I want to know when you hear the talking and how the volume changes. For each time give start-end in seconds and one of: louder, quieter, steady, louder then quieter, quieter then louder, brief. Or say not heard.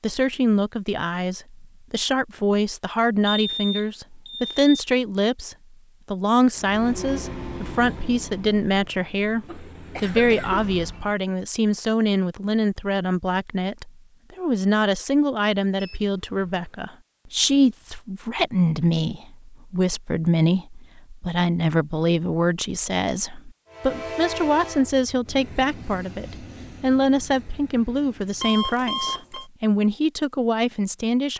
0.0-31.3 steady.